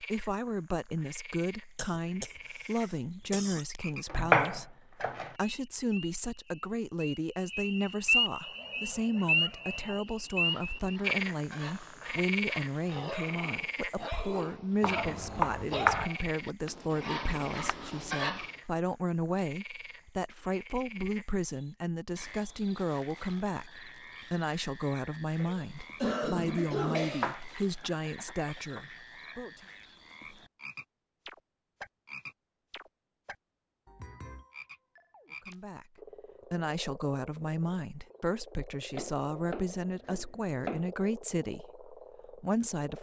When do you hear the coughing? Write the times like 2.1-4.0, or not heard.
1.8-2.3, 3.3-3.8, 25.4-27.3.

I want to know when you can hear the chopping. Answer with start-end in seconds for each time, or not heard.
4.0-5.3, 14.8-16.1, 27.2-28.8, 38.9-40.9.